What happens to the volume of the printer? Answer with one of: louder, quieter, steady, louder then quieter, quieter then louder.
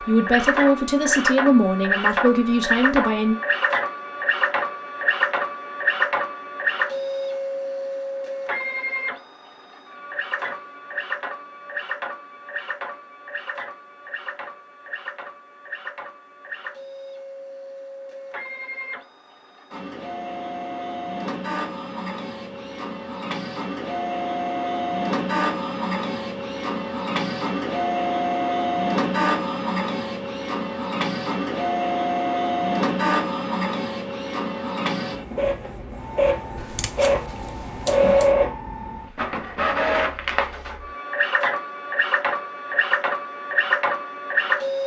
quieter then louder.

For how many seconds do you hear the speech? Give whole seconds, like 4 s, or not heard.
3 s.